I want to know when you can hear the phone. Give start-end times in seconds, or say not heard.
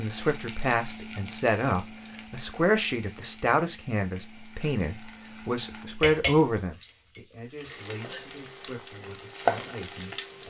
not heard.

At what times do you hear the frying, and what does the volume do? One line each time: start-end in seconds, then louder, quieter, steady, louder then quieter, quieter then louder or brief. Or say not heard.
0.0-10.4 quieter then louder.